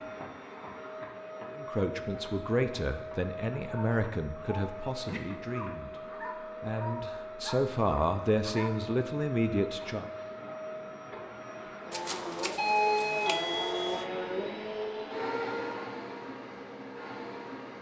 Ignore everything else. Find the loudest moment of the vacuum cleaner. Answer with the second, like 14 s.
13 s.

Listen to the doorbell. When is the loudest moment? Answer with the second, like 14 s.
13 s.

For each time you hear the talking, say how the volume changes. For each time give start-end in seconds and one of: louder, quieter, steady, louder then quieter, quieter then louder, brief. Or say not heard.
1.6-10.1 quieter then louder.